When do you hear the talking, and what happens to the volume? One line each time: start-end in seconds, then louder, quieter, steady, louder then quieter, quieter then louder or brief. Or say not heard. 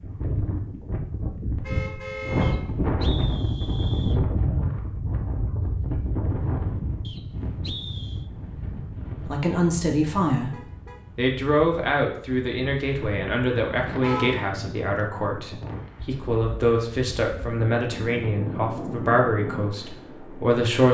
9.3-10.5 brief
11.2-20.8 steady.